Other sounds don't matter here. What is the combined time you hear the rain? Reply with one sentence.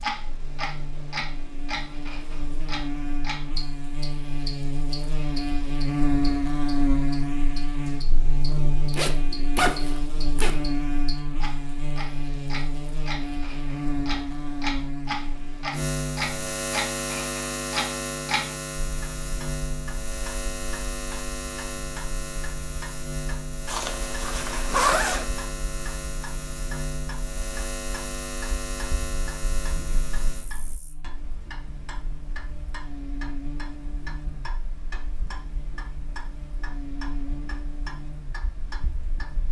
The rain can't be heard in this clip.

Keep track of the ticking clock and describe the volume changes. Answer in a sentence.
The loudness of the ticking clock goes down.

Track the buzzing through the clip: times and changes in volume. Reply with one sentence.
You can hear the buzzing from 0.0 to 39.4 s, getting quieter.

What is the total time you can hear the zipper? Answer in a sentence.
The zipper can be heard for 3 seconds in total.